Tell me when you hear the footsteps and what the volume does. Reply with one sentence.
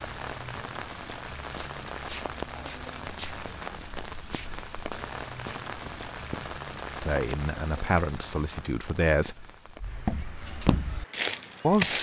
You can hear the footsteps from 1.6 to 6.5 s, at a steady volume; and briefly from 9.8 to 11.9 s.